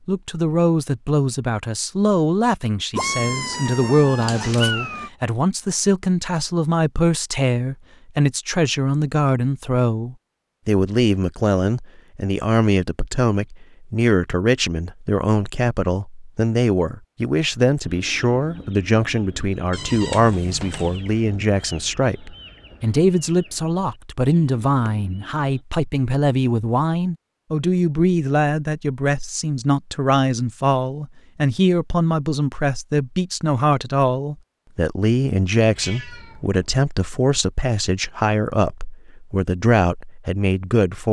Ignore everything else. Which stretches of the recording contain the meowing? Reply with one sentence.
You can hear the meowing from 2.9 to 5.1 s, from 19.7 to 21.0 s and from 35.7 to 36.6 s.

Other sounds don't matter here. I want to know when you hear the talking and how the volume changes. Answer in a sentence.
You can hear the talking from 0.1 to 41.0 s, at a steady volume.